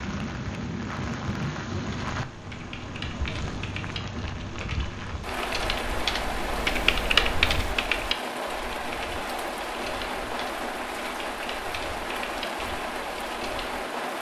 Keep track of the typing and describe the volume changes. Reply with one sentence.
The volume of the typing goes up, then down.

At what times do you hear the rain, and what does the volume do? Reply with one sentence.
You can hear the rain from 0.0 to 14.1 s, at a steady volume.